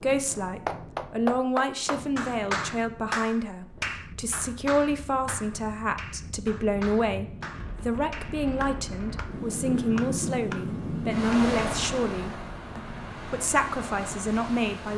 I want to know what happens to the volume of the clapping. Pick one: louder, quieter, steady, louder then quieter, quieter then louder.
quieter.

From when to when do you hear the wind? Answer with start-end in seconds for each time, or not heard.
0.0-14.9.